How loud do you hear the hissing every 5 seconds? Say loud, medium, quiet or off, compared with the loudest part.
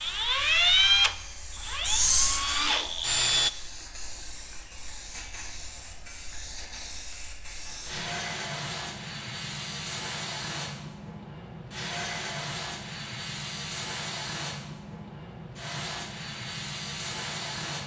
loud, medium, loud, loud.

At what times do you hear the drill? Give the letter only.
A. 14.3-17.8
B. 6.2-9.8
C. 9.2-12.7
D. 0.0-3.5
D.